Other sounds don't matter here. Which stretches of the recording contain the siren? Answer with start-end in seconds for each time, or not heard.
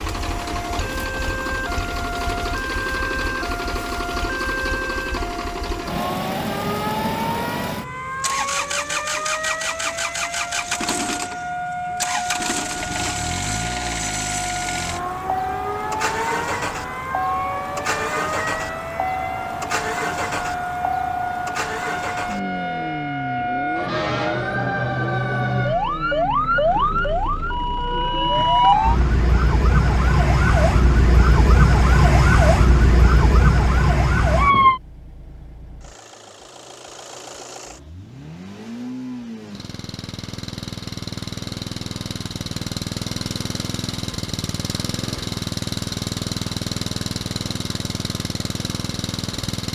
0.2-34.8.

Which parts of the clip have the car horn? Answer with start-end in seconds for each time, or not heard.
not heard.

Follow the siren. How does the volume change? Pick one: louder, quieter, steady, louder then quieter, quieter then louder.
louder.